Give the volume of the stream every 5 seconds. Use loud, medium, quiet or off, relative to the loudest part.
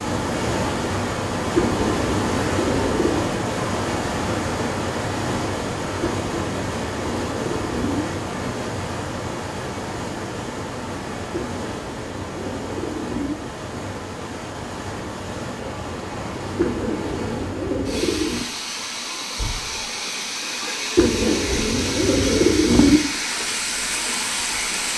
loud, loud, medium, medium, loud.